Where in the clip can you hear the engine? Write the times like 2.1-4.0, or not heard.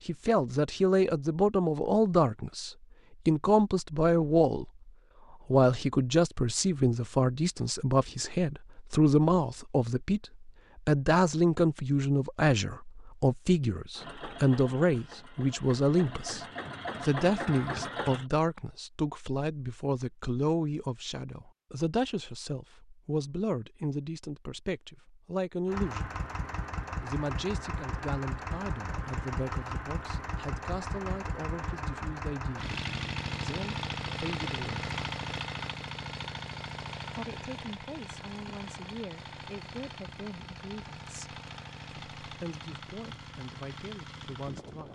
13.9-18.2, 25.6-44.8.